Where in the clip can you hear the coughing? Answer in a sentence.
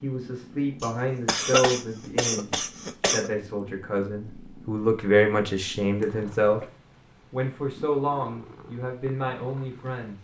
The coughing can be heard from 0.8 to 3.3 s and from 6.0 to 6.7 s.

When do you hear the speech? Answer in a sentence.
The speech can be heard from 0.0 to 6.6 s and from 7.3 to 10.1 s.